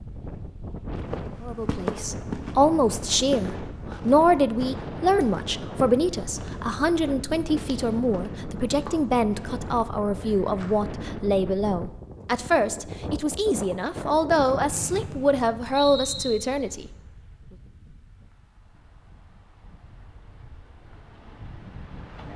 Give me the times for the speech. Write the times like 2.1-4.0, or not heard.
1.4-16.9.